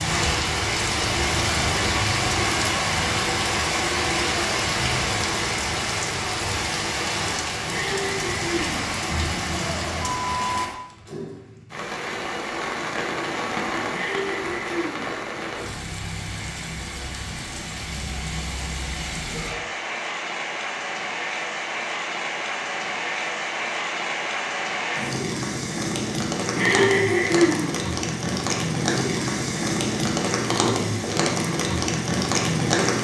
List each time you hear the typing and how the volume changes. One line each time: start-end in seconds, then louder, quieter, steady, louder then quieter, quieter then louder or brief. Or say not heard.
not heard.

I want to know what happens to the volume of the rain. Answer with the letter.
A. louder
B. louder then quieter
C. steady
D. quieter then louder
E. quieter
D.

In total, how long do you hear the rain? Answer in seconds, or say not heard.
33 s.